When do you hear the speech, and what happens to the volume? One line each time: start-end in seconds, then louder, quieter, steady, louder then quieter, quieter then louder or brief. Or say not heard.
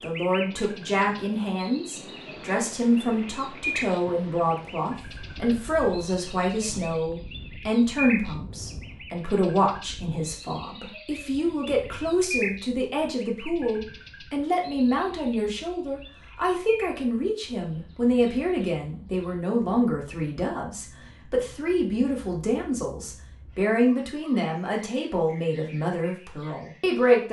0.0-27.2 steady.